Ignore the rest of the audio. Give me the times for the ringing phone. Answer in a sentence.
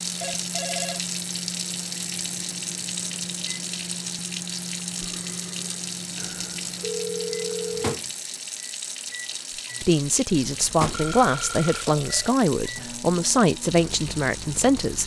The ringing phone can be heard from 0.2 to 1.1 s, from 6.2 to 8.0 s and from 10.9 to 11.8 s.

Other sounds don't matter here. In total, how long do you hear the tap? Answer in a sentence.
You can hear the tap for 15 seconds altogether.